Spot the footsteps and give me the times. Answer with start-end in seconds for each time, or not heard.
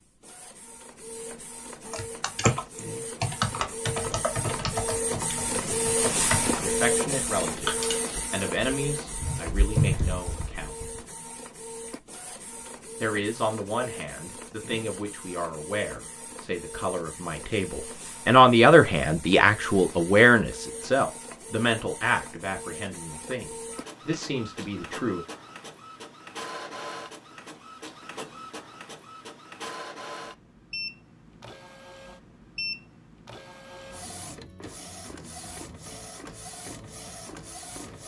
not heard.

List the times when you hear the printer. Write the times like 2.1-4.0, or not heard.
0.0-38.0.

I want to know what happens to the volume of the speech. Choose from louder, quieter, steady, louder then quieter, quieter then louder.
louder then quieter.